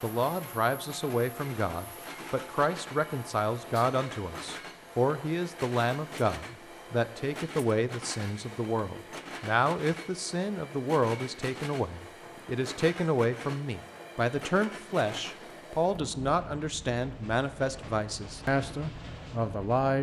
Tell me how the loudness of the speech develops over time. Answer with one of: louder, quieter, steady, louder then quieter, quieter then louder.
steady.